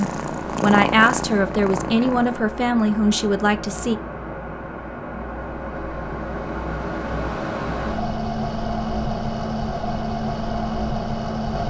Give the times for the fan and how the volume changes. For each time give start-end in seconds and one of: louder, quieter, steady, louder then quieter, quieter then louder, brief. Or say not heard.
0.0-11.6 louder.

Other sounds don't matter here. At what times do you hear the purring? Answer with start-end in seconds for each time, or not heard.
0.0-2.5.